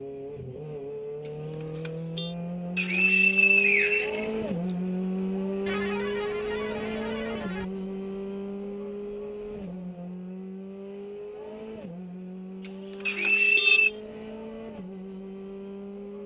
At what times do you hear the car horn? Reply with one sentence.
You can hear the car horn from 1.2 to 2.4 s, from 5.7 to 7.7 s and from 12.6 to 14.0 s.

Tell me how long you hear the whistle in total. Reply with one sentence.
You can hear the whistle for 3 seconds altogether.